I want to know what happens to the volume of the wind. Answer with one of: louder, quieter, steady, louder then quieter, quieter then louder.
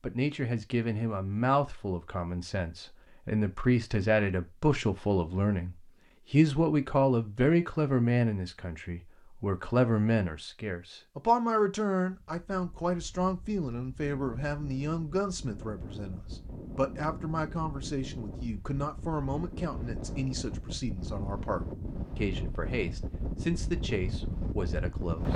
louder.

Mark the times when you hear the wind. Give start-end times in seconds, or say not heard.
12.1-25.3.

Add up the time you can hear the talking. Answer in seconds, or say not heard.
25 s.